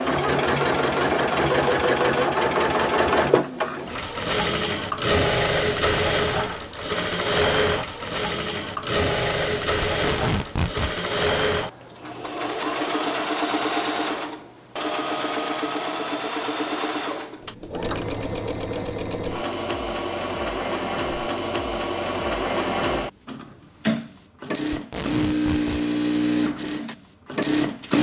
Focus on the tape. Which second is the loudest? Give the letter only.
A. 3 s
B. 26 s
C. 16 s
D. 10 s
D.